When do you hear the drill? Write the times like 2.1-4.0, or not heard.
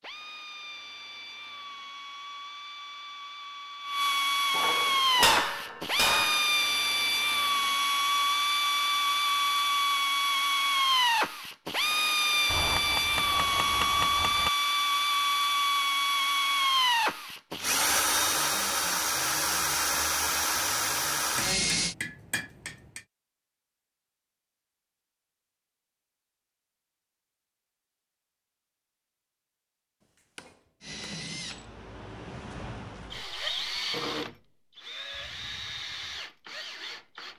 0.0-21.9, 30.8-37.3.